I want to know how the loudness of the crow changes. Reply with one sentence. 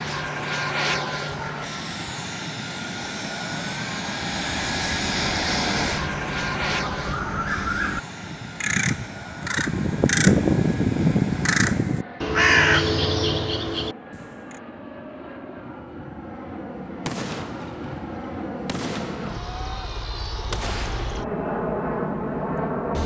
The loudness of the crow goes up.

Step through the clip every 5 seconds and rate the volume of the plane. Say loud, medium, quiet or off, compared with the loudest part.
loud, loud, medium, medium, loud.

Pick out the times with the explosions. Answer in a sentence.
The explosions can be heard from 17.0 to 21.1 s.